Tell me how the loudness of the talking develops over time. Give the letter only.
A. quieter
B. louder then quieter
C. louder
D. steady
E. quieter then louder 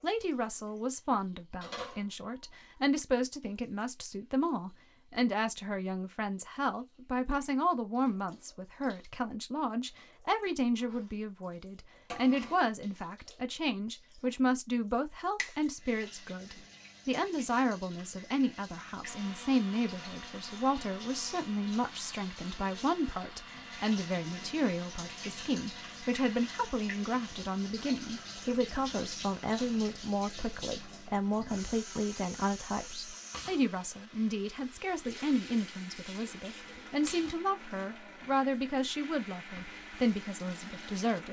D.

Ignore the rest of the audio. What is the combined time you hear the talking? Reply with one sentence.
You can hear the talking for 41 seconds altogether.